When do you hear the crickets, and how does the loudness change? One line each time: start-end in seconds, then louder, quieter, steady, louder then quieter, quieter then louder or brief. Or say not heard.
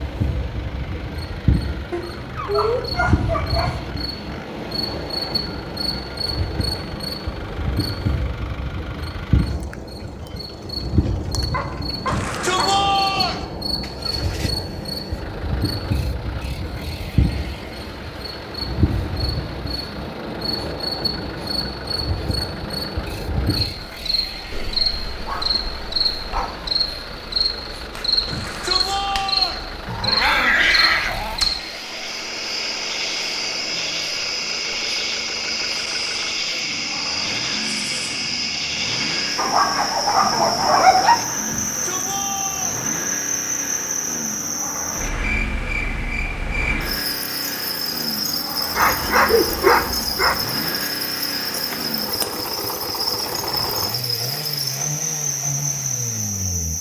0.0-56.7 steady.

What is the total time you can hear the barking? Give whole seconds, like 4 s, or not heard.
10 s.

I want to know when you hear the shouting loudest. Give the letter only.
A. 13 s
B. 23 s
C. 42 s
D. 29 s
A.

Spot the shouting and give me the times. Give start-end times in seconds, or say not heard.
12.1-13.4, 28.2-29.6, 41.5-42.9.